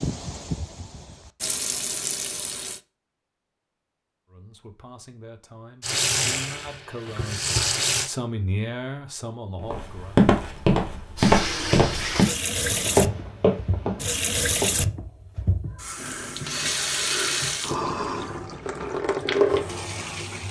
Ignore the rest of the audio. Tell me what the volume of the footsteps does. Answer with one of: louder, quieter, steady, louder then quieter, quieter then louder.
quieter.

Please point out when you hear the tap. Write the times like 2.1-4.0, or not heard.
0.0-2.8, 5.8-8.1, 11.2-20.4.